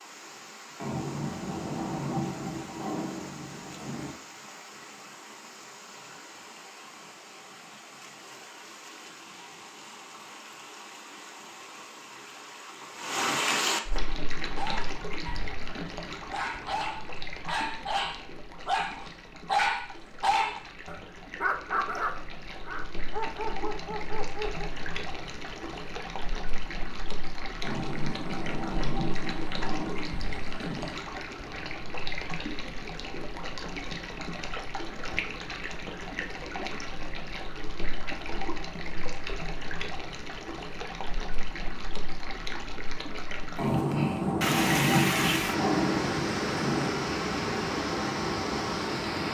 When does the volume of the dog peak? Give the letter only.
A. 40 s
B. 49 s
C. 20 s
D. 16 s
C.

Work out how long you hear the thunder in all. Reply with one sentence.
The thunder can be heard for 10 seconds in total.